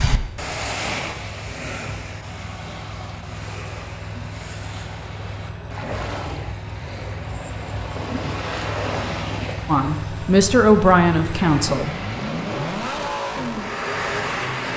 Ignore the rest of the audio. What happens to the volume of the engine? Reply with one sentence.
The loudness of the engine goes up.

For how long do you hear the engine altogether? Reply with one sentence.
The engine can be heard for 15 seconds in total.